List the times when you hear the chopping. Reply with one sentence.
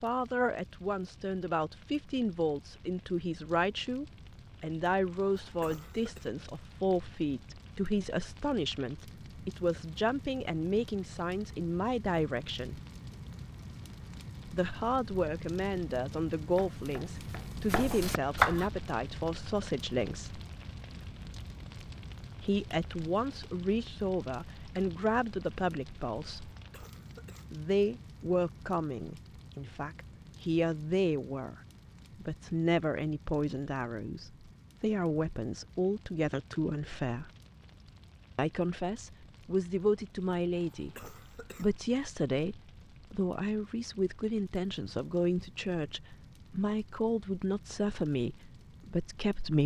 The chopping can be heard from 16.5 to 18.7 s.